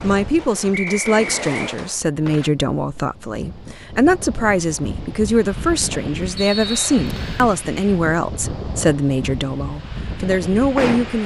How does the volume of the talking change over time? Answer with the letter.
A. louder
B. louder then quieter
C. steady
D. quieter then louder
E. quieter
C.